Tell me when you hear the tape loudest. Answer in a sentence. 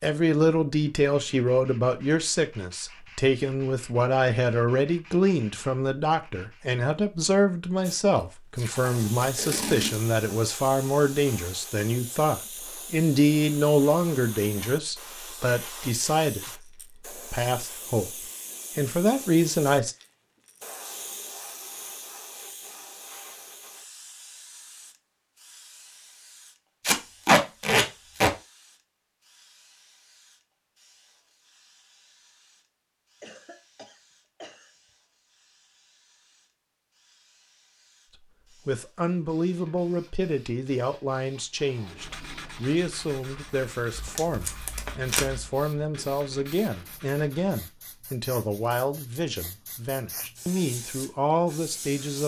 The volume of the tape peaks at 27 seconds.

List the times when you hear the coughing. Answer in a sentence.
The coughing can be heard from 33.2 to 34.7 s.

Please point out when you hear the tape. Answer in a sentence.
You can hear the tape from 8.6 to 10.1 s, from 26.8 to 28.4 s and from 43.9 to 45.5 s.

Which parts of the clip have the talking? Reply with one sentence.
The talking can be heard from 0.0 to 18.1 s, from 18.8 to 19.9 s and from 38.6 to 52.2 s.